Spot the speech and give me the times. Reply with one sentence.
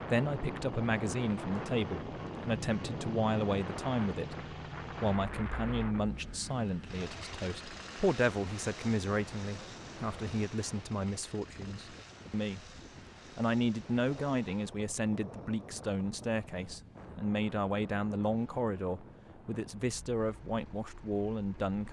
The speech can be heard from 0.0 to 21.8 s.